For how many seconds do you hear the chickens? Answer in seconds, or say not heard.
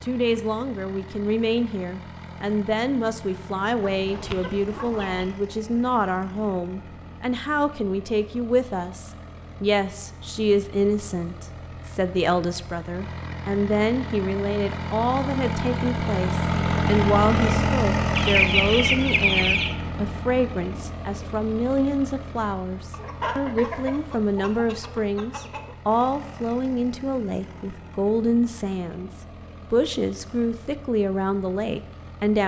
6 s.